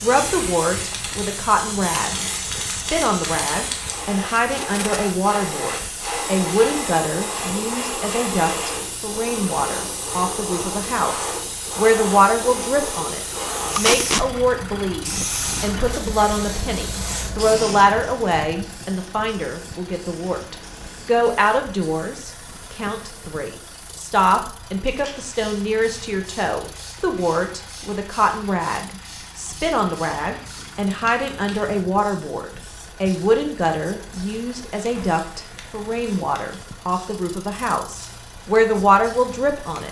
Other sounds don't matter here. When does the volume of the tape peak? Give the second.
14 s.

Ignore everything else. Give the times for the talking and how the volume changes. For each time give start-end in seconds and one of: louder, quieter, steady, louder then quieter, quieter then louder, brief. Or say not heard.
0.0-39.8 steady.